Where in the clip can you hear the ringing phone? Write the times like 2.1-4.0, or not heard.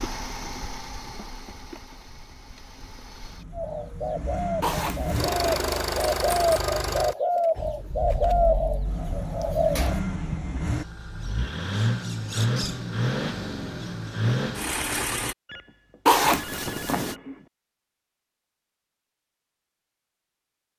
15.4-17.5.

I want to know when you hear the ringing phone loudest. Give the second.
17 s.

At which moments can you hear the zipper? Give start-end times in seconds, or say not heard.
4.6-6.6, 16.1-17.1.